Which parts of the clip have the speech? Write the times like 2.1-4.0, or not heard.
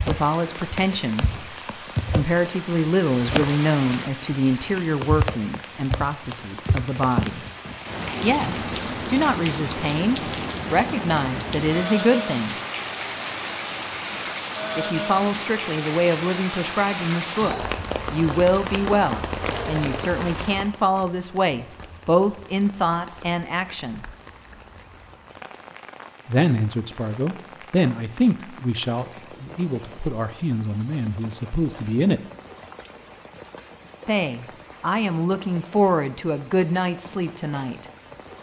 0.1-1.5, 2.1-7.5, 8.2-12.6, 14.8-24.1, 26.2-32.2, 34.0-37.9.